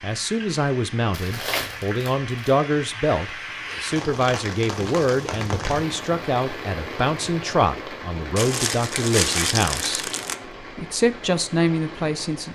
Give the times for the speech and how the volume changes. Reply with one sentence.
You can hear the speech from 0.0 to 12.5 s, at a steady volume.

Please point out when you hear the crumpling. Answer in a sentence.
You can hear the crumpling from 1.1 to 2.5 s and from 8.3 to 10.3 s.